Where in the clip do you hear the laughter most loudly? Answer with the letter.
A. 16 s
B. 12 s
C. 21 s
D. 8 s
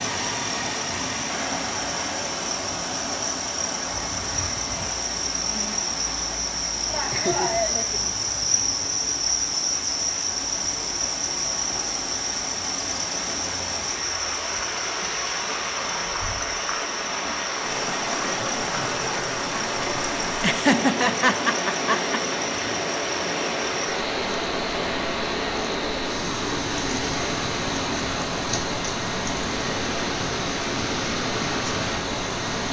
C.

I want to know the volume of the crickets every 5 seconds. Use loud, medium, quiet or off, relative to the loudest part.
medium, loud, loud, medium, medium, medium, medium.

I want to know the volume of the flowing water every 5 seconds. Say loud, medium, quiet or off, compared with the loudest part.
loud, medium, medium, loud, loud, loud, loud.